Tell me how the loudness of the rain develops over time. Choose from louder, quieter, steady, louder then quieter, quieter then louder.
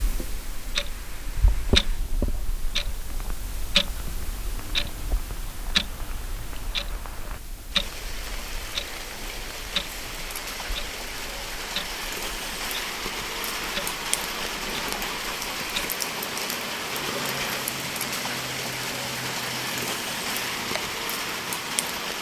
louder.